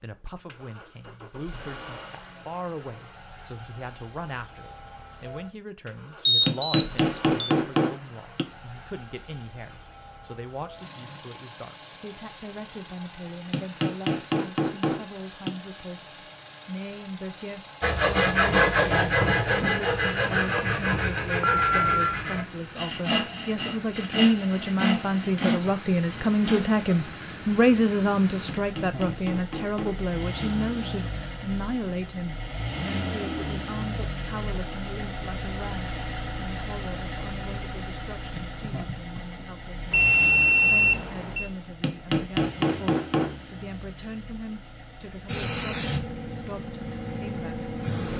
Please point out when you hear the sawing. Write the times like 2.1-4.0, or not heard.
17.8-27.2.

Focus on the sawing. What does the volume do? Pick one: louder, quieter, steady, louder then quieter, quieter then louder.
quieter.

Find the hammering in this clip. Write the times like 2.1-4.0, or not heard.
6.5-8.4, 13.5-15.5, 28.4-30.4, 41.8-43.4.